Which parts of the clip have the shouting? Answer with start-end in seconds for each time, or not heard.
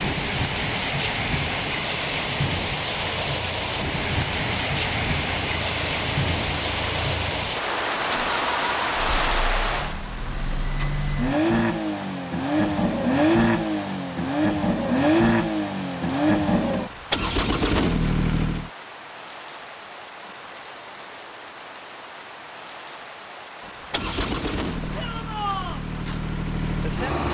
24.9-25.9.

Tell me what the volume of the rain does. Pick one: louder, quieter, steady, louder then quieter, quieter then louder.
quieter.